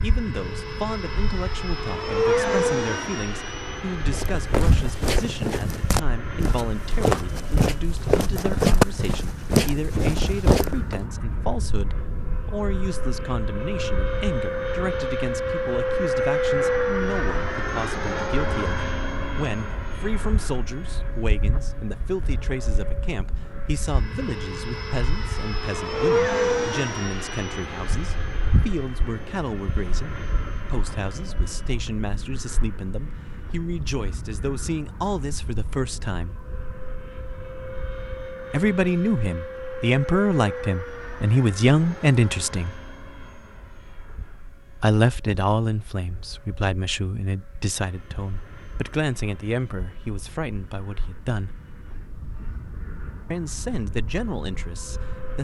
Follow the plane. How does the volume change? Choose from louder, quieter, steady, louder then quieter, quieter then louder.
quieter.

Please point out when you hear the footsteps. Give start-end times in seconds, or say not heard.
4.1-11.0.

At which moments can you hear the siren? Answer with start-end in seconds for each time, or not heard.
not heard.